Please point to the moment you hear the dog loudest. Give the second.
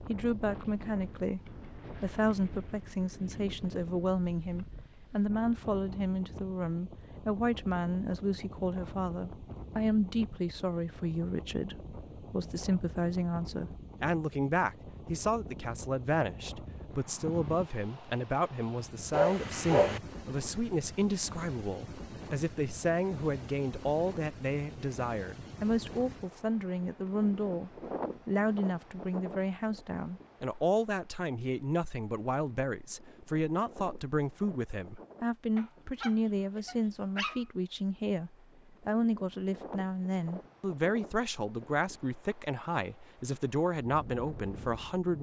20 s.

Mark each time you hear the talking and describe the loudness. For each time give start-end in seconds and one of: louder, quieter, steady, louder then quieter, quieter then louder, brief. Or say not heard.
0.0-45.1 steady.